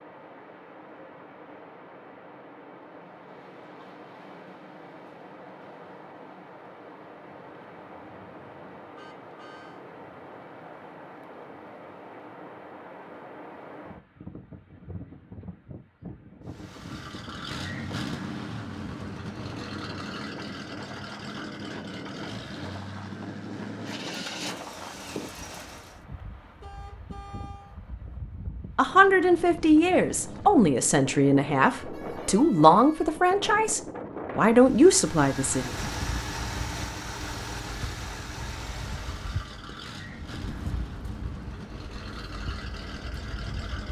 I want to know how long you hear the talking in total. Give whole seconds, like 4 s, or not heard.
7 s.